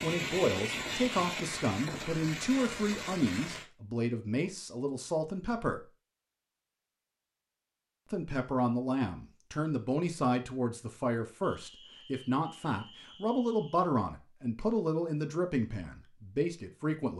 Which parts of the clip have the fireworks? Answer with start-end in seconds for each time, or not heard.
0.0-3.6.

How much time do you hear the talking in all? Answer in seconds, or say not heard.
15 s.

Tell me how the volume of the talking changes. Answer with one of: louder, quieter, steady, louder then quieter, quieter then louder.
steady.